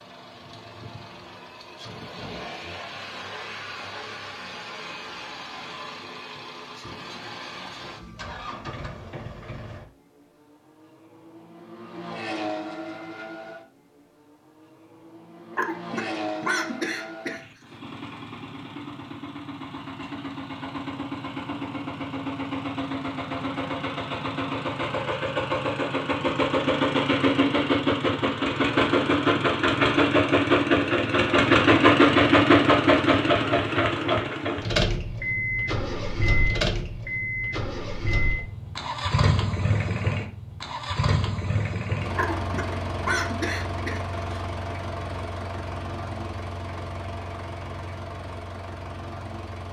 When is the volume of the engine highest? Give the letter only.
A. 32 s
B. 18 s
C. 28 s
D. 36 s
A.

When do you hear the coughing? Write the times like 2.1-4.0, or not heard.
15.5-17.4, 42.1-44.4.